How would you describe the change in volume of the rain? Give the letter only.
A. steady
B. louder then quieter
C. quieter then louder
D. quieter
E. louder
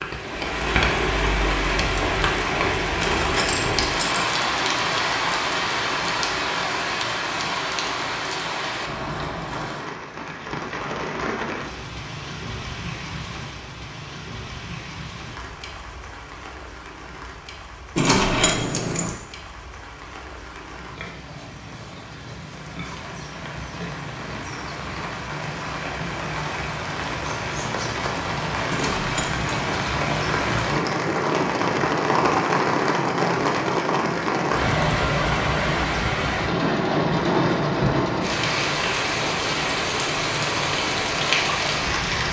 C.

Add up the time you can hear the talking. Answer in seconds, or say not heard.
not heard.